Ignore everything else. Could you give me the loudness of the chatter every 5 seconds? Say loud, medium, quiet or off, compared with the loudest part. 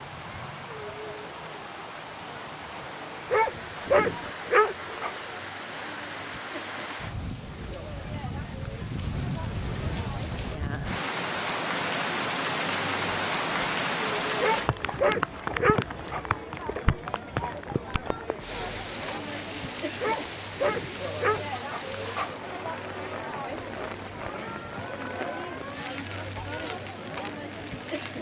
medium, medium, loud, loud, loud, loud.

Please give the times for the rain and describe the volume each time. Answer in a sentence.
The rain can be heard from 0.0 to 28.1 s, getting louder then quieter.